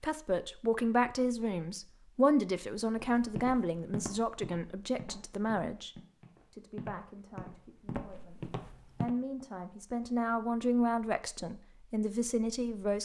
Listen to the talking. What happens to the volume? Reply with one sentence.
The loudness of the talking goes down, then up.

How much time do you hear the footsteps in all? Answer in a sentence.
You can hear the footsteps for 6 seconds altogether.